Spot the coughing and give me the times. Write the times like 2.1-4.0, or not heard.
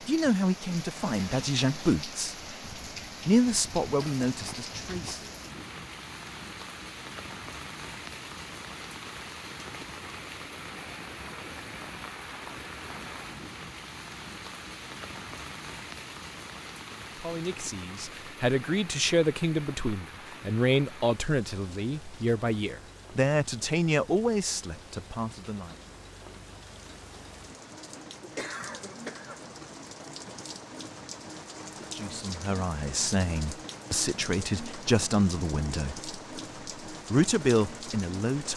4.0-5.3, 27.8-29.6.